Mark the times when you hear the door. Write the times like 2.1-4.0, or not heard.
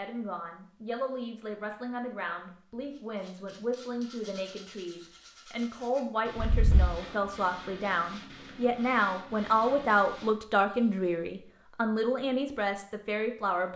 6.3-7.0.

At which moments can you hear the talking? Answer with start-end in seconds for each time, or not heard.
0.0-13.7.